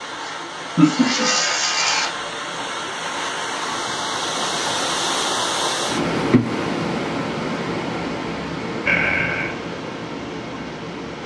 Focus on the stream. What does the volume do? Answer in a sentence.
The volume of the stream goes up, then down.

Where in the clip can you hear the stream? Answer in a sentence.
You can hear the stream from 0.0 to 11.2 s.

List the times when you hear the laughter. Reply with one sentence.
The laughter can be heard from 0.2 to 2.1 s and from 8.8 to 9.5 s.